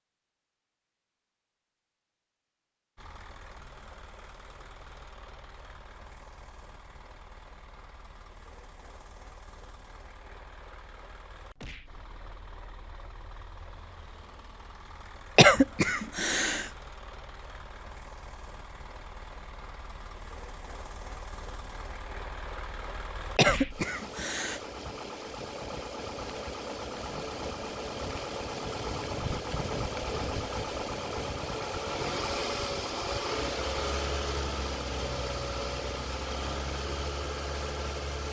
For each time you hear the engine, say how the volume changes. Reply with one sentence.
The engine can be heard from 3.0 to 38.2 s, getting louder.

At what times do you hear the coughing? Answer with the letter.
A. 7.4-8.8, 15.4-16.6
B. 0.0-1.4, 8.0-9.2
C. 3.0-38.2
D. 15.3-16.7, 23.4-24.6
D.